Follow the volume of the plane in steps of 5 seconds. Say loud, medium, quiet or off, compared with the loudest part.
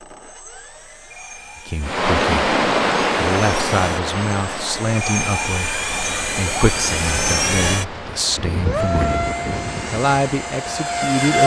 quiet, loud, loud.